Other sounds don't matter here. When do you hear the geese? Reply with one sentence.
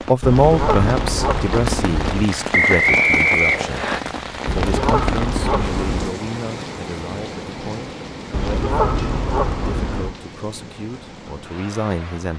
The geese can be heard from 0.2 to 2.3 s, from 4.5 to 6.2 s and from 8.3 to 10.2 s.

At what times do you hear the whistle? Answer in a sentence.
The whistle can be heard from 2.5 to 4.0 s.